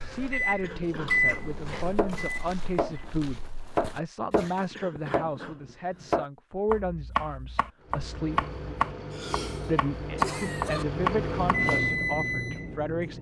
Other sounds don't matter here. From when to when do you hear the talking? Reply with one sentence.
You can hear the talking from 0.0 to 8.4 s and from 9.7 to 13.1 s.